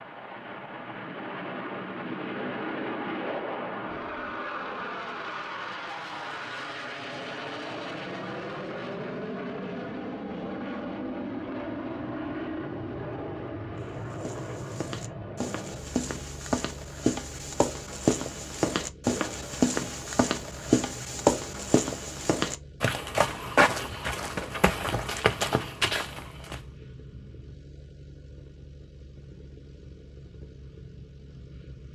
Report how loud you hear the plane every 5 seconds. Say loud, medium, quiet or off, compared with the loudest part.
loud, loud, loud, medium, quiet, quiet, quiet.